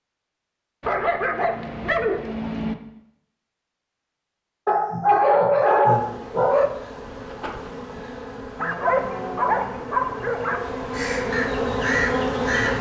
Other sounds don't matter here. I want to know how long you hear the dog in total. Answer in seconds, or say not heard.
6 s.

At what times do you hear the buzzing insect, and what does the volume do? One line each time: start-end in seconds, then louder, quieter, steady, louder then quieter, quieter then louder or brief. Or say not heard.
5.8-12.7 louder.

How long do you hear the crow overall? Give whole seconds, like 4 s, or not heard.
2 s.